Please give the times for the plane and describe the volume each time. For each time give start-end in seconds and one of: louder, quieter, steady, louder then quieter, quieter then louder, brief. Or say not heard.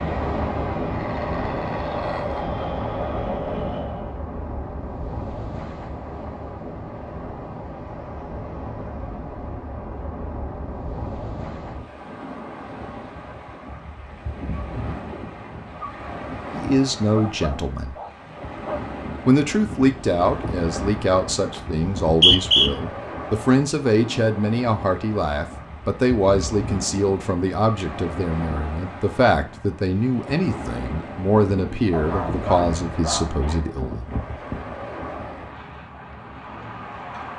0.0-4.2 louder.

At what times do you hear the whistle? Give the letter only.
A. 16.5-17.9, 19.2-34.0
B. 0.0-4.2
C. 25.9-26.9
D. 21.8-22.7
D.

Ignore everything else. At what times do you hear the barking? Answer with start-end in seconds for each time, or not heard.
0.9-2.5, 17.1-18.9, 31.9-33.6.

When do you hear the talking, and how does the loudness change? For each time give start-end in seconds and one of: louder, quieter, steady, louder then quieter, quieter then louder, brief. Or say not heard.
16.5-17.9 brief
19.2-34.0 steady.